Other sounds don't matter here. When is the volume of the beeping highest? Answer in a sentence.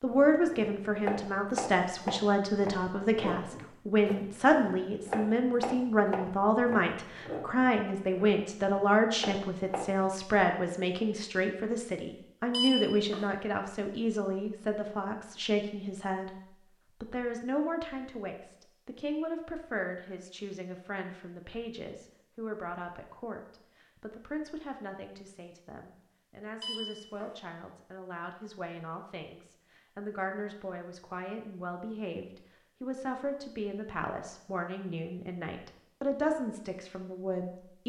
The volume of the beeping peaks at 13 seconds.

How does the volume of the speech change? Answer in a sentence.
The loudness of the speech goes down, then up.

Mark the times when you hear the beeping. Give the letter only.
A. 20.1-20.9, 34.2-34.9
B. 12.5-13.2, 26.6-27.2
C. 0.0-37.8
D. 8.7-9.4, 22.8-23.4
B.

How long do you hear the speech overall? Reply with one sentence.
The speech can be heard for 38 seconds in total.